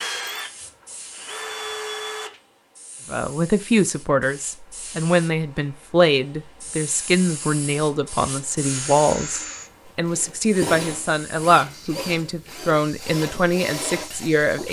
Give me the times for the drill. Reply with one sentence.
The drill can be heard from 0.0 to 2.4 s and from 8.6 to 14.6 s.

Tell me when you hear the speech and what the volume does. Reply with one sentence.
You can hear the speech from 3.1 to 14.6 s, at a steady volume.